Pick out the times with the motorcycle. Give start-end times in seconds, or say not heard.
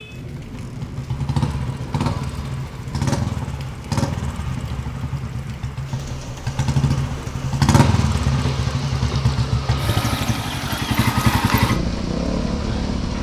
0.0-13.1.